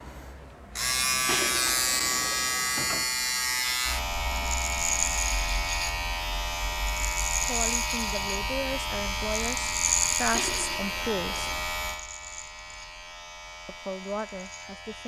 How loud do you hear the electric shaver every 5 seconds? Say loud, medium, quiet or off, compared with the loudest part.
loud, loud, medium.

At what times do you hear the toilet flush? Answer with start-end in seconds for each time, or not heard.
1.2-2.5, 10.3-11.7.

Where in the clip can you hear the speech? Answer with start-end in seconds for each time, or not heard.
7.4-11.5, 13.7-15.0.